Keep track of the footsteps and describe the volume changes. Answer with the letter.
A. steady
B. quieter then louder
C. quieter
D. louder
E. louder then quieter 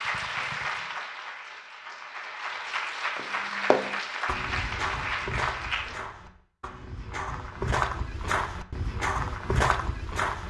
B.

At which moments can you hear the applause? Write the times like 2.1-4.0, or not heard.
0.0-6.0.